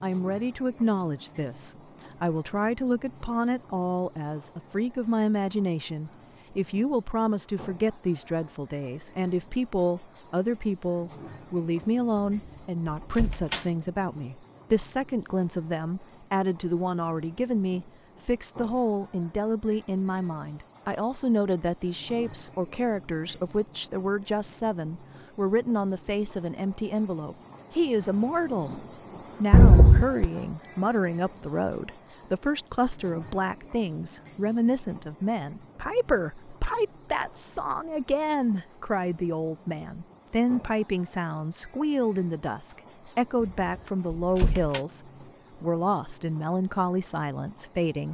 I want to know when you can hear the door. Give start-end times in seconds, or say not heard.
13.0-13.7, 29.5-30.3, 43.4-44.8.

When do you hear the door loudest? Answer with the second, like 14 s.
30 s.